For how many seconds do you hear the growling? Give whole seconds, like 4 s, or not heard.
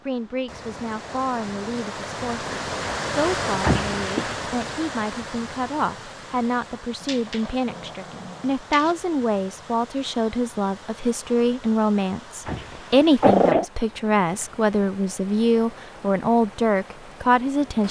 4 s.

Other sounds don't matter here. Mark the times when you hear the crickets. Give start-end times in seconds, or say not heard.
not heard.